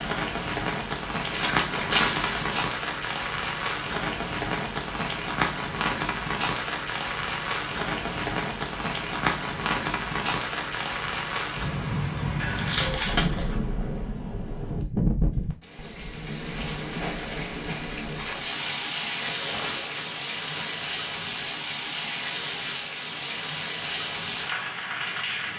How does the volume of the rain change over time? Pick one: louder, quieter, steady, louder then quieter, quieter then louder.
steady.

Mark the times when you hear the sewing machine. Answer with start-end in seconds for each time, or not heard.
not heard.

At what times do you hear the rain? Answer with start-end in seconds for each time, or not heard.
0.0-25.5.